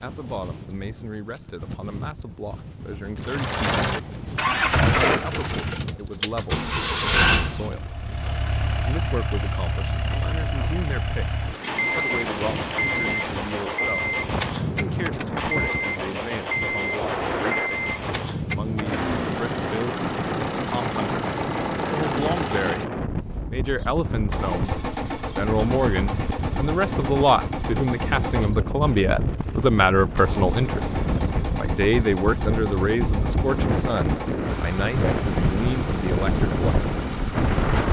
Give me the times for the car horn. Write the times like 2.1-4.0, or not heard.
not heard.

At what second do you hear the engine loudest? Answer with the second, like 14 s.
5 s.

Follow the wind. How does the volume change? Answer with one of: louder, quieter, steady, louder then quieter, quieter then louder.
louder.